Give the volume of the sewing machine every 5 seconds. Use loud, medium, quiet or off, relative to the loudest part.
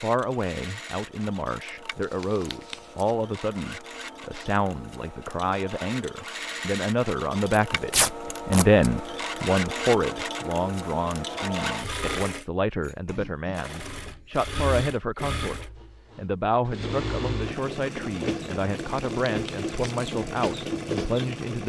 medium, loud, loud, loud, loud.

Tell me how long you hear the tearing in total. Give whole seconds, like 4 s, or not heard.
4 s.